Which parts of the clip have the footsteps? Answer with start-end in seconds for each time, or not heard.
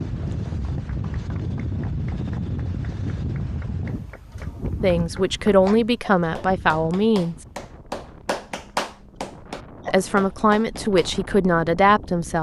not heard.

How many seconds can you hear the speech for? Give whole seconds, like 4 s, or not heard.
5 s.